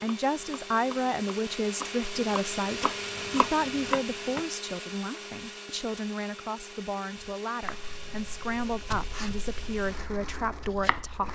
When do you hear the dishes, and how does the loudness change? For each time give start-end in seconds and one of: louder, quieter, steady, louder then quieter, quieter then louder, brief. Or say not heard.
not heard.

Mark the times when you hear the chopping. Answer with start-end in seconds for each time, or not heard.
0.0-4.5, 7.6-11.2.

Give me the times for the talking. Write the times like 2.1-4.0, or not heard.
0.0-11.2.